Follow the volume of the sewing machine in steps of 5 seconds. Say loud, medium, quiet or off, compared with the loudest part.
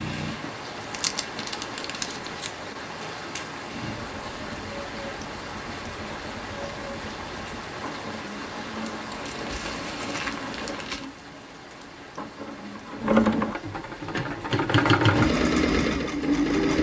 quiet, quiet, medium, loud.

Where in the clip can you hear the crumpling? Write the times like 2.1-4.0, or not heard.
0.9-2.5, 9.1-11.1.